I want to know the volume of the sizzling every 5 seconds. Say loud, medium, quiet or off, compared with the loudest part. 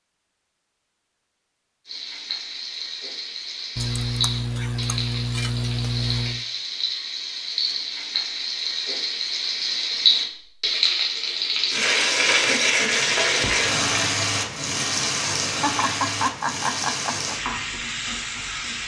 medium, medium, loud, medium.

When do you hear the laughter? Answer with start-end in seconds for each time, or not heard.
3.8-6.4, 15.6-17.4.